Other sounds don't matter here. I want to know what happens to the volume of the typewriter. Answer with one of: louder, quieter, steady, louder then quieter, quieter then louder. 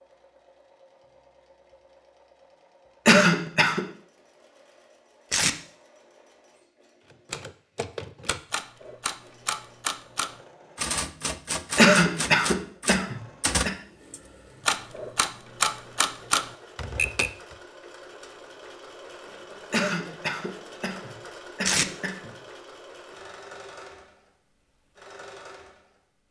louder.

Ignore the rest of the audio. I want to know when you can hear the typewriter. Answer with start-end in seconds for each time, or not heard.
7.1-17.3.